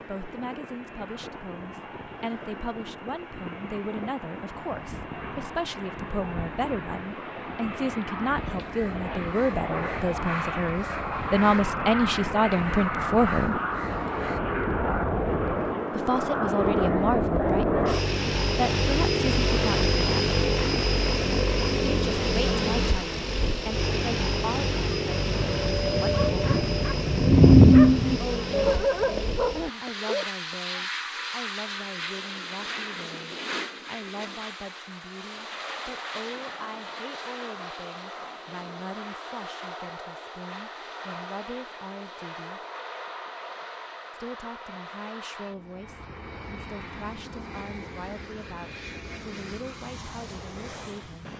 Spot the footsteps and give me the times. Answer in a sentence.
The footsteps can't be heard in this clip.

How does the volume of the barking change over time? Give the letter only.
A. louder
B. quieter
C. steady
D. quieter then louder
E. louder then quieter
E.